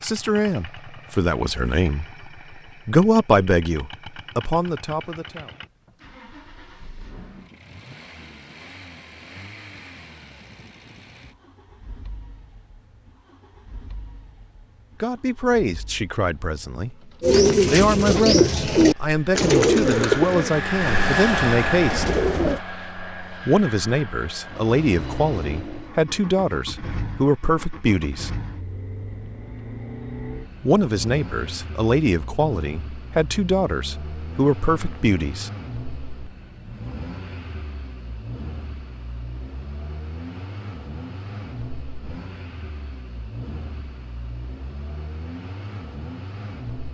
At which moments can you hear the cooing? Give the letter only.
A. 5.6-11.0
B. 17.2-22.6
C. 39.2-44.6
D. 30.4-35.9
B.